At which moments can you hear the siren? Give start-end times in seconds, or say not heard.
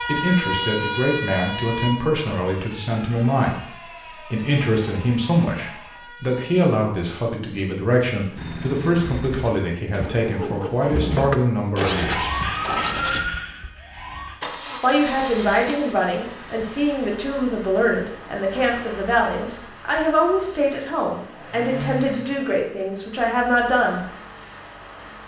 0.0-6.7, 11.8-14.4.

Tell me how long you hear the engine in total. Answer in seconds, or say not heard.
17 s.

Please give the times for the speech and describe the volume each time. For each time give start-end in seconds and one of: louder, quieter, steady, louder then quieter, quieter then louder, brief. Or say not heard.
0.1-12.3 steady
14.8-24.1 steady.